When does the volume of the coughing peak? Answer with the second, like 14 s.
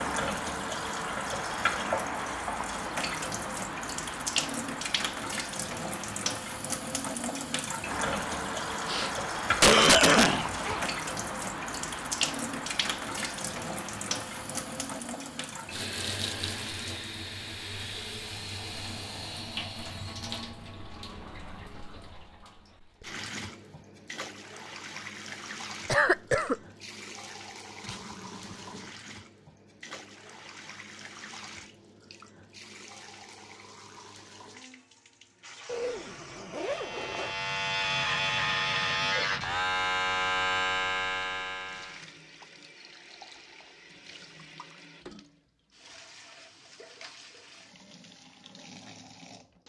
10 s.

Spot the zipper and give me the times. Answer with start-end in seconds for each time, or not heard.
10.5-11.0, 27.8-29.0, 35.6-37.4.